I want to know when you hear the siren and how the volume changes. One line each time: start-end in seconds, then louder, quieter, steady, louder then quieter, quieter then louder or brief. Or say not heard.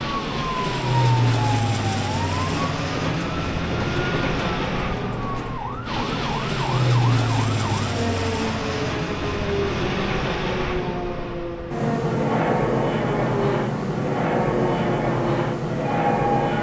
0.0-16.5 steady.